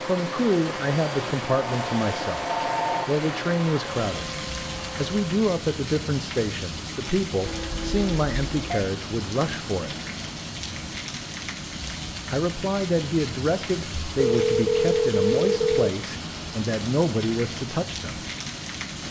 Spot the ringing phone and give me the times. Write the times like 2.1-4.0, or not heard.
1.6-3.0, 7.5-8.9, 14.1-15.9.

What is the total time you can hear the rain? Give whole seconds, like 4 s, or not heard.
19 s.